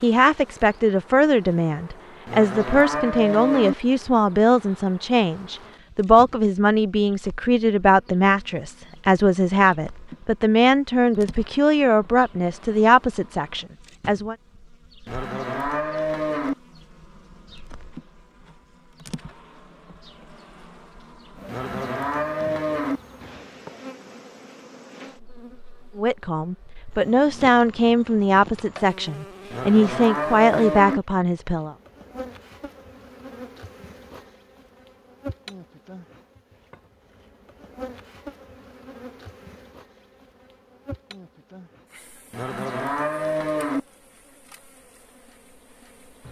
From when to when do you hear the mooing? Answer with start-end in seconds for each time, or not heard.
2.2-3.8, 15.1-16.6, 21.4-23.0, 29.5-31.0, 42.3-43.8.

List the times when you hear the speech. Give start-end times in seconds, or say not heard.
0.0-14.3, 25.9-31.8.